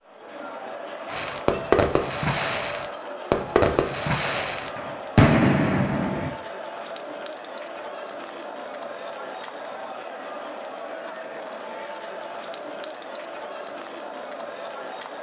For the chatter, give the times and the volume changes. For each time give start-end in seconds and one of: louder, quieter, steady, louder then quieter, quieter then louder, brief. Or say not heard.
0.0-15.1 steady.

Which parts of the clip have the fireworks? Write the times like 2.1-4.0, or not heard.
1.1-6.3.